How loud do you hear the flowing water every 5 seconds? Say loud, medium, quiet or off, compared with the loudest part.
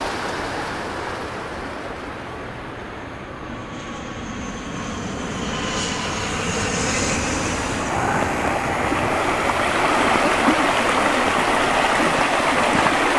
quiet, medium, loud.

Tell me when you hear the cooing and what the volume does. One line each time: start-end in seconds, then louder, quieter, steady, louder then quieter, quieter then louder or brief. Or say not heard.
not heard.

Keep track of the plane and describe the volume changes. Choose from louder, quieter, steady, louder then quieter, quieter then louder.
louder then quieter.